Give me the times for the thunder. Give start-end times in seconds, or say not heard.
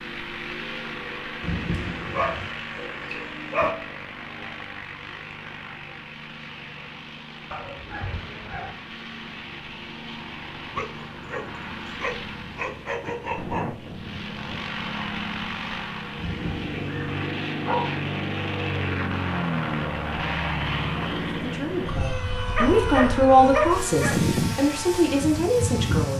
1.4-2.5, 16.1-17.2.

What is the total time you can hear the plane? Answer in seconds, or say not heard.
26 s.